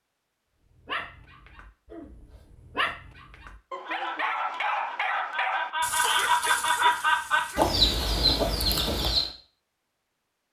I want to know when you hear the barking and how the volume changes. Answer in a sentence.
You can hear the barking from 0.8 to 7.8 s, getting louder.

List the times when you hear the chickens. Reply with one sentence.
The chickens can be heard from 3.9 to 9.3 s.